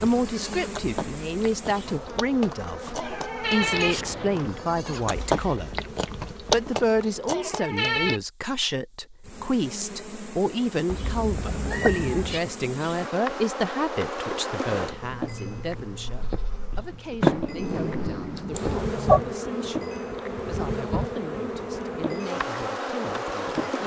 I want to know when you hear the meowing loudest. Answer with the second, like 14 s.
19 s.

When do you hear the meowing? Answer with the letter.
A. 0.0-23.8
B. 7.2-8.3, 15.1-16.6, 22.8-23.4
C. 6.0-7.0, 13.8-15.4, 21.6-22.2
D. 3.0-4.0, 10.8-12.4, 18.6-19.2
D.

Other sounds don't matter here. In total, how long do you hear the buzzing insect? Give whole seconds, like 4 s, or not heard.
24 s.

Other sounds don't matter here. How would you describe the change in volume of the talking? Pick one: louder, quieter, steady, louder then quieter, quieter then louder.
quieter.